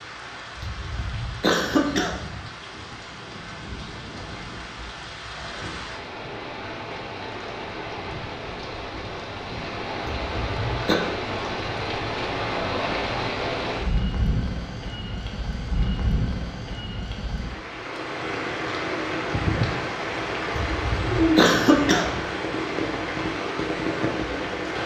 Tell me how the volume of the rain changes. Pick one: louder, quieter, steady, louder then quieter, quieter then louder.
louder.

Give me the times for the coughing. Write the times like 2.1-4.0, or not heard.
0.6-2.5, 10.1-10.9, 20.6-22.2.